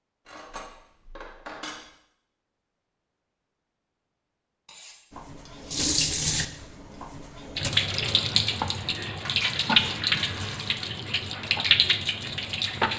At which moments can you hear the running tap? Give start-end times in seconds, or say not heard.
5.2-12.9.